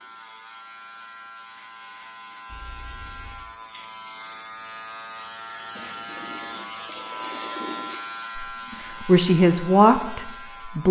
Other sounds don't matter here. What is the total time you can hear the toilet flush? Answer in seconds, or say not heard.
3 s.